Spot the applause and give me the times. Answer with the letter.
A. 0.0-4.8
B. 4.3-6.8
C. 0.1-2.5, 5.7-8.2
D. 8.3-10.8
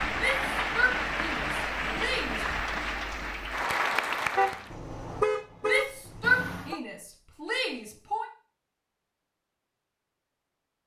A.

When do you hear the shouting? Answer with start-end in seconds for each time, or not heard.
0.1-2.5, 5.7-8.2.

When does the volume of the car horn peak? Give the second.
5 s.